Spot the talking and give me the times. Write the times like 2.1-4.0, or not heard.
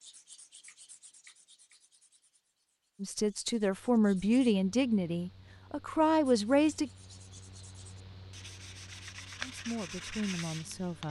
3.0-6.9, 9.4-11.0.